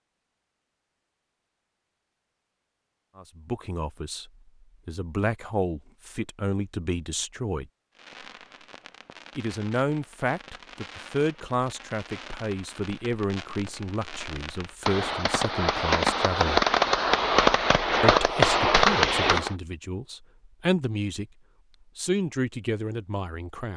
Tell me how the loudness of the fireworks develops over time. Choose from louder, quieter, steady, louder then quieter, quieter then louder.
louder.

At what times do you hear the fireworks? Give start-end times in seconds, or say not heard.
8.0-19.6.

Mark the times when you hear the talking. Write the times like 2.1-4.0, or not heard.
3.1-7.7, 9.3-16.6, 18.0-21.2, 21.9-23.7.